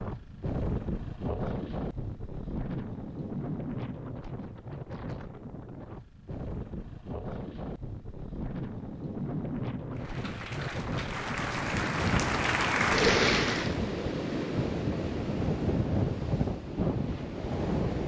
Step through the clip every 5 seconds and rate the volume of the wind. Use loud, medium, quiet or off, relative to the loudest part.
medium, medium, loud, loud.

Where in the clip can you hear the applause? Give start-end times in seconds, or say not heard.
9.9-13.8.